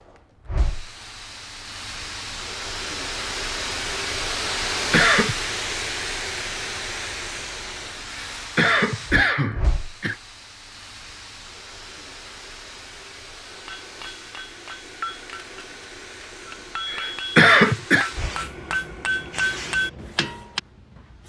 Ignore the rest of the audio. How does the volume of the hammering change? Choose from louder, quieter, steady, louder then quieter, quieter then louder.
quieter then louder.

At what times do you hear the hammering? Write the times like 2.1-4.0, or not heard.
13.4-20.6.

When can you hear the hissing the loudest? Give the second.
5 s.